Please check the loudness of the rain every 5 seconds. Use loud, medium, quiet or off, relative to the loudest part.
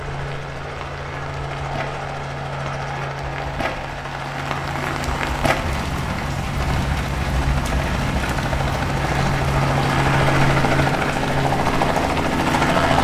medium, loud, loud.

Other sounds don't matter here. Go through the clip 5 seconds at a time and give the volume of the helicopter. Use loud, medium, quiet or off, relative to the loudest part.
medium, medium, loud.